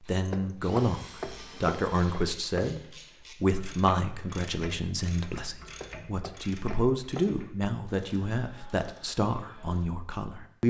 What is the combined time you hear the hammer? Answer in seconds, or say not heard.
4 s.